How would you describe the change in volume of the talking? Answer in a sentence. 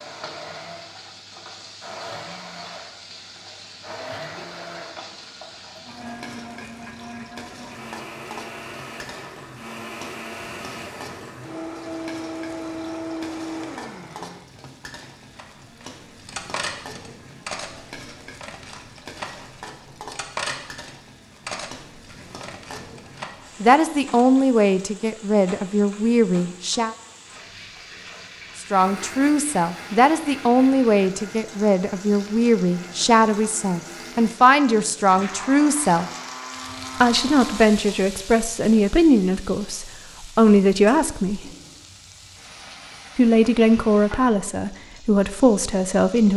The volume of the talking stays about the same.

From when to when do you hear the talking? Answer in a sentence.
You can hear the talking from 23.6 to 26.9 s, from 28.6 to 36.1 s, from 37.0 to 41.4 s and from 43.1 to 46.3 s.